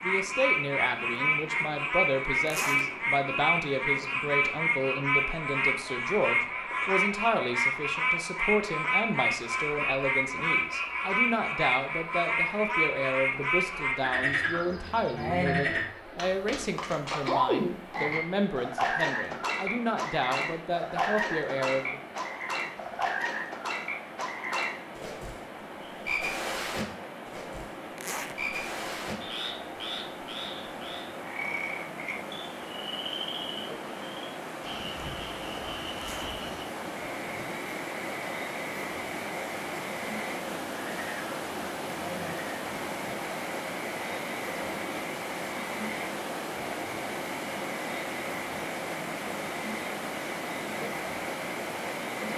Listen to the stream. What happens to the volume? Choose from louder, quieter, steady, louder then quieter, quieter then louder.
louder.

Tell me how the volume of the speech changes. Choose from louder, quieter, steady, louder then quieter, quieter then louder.
steady.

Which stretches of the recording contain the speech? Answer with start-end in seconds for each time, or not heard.
0.0-22.0.